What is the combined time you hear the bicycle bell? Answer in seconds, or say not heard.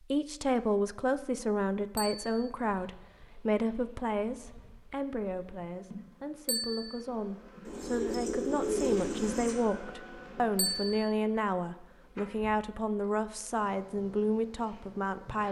2 s.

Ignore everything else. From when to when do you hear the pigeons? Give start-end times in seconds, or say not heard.
7.7-9.6.